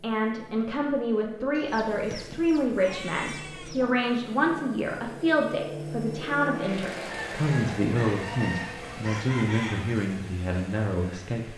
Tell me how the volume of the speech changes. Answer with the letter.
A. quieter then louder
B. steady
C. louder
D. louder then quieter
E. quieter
B.